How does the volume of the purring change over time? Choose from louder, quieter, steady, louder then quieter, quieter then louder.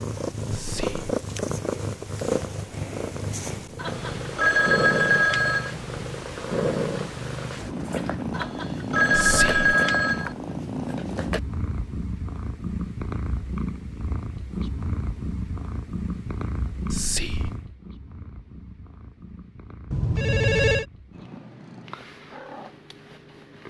quieter.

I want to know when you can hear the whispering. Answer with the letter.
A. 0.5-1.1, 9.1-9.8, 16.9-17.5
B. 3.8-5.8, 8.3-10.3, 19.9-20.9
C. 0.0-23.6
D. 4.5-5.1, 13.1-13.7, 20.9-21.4
A.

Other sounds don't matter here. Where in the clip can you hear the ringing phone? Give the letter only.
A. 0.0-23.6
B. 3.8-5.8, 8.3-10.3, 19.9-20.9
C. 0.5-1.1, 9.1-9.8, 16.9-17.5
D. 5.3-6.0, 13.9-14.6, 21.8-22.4
B.